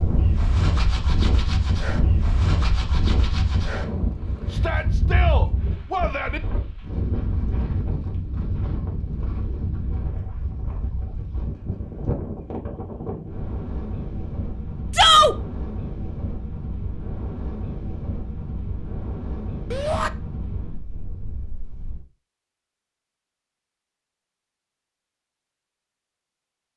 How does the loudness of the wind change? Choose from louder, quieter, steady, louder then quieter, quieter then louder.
quieter.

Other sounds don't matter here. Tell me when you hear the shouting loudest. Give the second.
15 s.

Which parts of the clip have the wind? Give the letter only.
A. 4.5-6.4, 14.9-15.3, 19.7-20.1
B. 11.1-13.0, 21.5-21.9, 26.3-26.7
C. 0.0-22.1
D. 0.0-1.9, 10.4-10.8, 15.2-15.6
C.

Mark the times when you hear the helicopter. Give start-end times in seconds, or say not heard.
not heard.